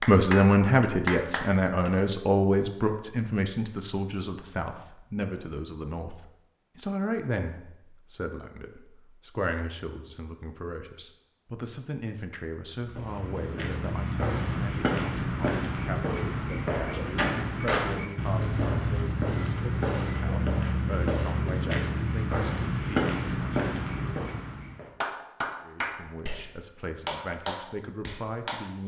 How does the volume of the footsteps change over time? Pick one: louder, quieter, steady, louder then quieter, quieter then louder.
steady.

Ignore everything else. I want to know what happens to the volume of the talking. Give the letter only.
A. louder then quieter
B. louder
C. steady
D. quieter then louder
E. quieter
E.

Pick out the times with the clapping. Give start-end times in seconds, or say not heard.
0.0-1.9, 25.0-28.6.